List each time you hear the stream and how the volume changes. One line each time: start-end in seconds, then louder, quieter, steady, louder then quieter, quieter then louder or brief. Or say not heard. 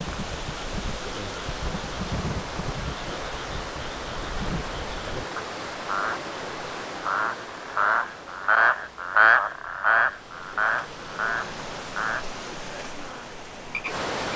0.0-14.3 quieter then louder.